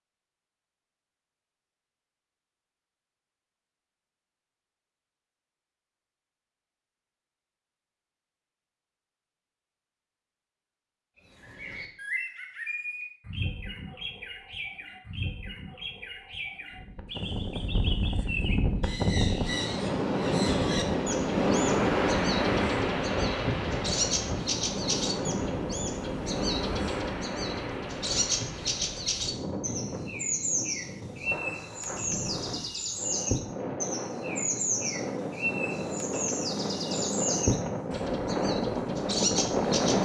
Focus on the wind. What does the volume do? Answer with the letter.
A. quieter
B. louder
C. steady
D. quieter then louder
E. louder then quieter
D.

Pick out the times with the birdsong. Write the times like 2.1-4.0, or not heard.
11.3-39.9.